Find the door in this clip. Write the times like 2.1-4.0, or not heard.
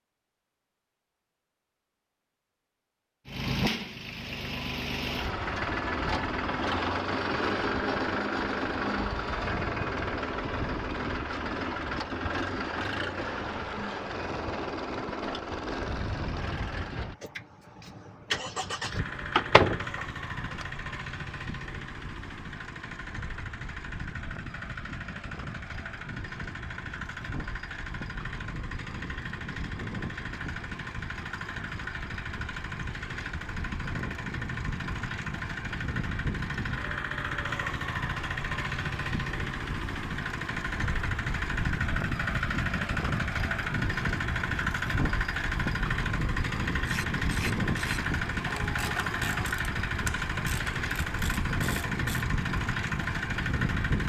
18.9-20.6.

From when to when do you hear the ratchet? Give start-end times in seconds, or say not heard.
46.9-52.2.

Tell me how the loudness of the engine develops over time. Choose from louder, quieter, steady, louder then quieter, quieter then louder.
quieter then louder.